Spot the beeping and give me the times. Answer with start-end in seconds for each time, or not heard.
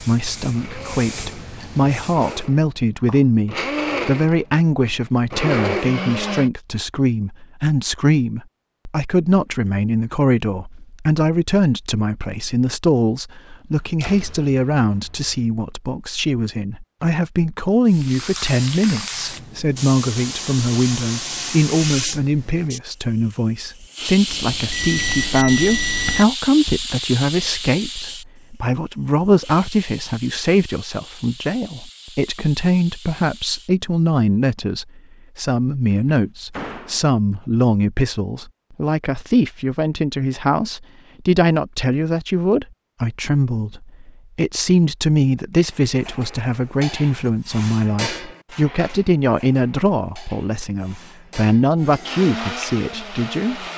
24.2-26.2.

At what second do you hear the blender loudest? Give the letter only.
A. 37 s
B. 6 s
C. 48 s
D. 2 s
B.